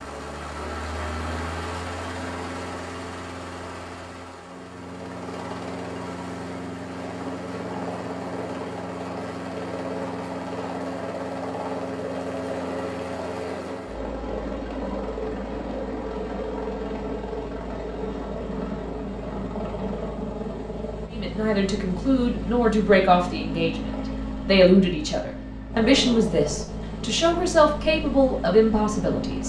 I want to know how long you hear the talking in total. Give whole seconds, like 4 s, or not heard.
8 s.